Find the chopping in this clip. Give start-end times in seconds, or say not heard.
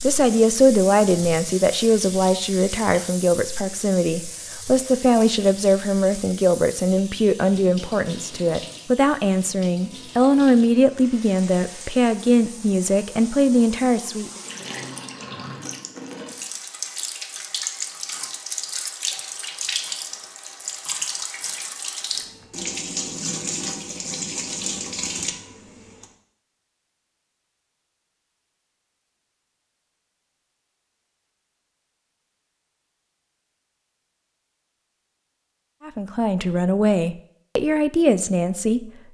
not heard.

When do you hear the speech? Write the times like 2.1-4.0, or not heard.
0.0-14.3, 35.9-38.9.